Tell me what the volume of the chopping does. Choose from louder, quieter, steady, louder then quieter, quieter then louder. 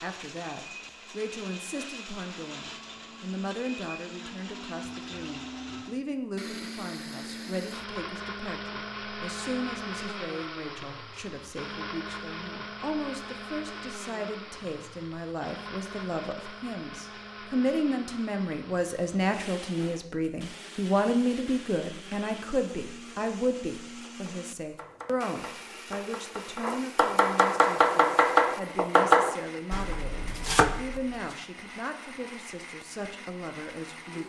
louder then quieter.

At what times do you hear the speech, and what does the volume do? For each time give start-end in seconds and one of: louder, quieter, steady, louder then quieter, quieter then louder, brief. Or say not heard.
0.0-34.2 louder then quieter.